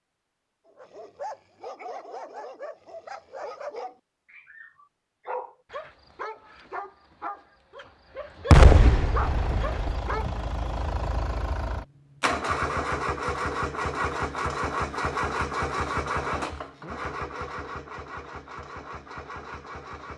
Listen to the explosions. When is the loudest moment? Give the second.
9 s.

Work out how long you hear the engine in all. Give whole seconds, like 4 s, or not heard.
11 s.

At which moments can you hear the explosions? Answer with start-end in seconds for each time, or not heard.
8.5-10.0.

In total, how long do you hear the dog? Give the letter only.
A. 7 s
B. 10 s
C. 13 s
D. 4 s
B.